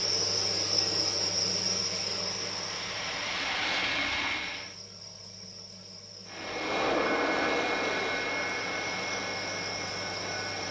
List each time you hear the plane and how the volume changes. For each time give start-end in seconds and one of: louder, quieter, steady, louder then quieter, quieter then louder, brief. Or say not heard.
0.0-4.8 louder
6.2-10.6 quieter.